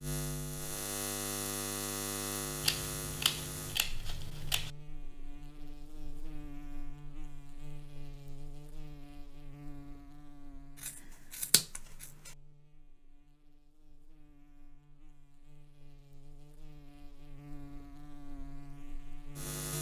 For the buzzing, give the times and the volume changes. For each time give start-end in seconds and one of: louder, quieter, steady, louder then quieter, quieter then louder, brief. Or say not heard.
0.0-19.7 quieter then louder.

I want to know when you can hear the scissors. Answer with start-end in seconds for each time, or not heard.
2.6-4.7, 10.8-12.1.